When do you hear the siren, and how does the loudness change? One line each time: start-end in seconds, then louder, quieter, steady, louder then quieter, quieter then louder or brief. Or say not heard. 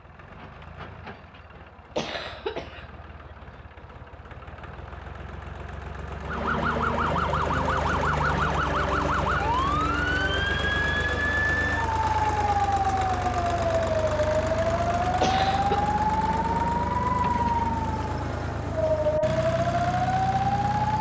6.2-20.9 steady.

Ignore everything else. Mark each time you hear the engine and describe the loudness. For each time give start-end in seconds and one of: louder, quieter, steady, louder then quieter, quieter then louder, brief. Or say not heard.
0.0-20.9 louder.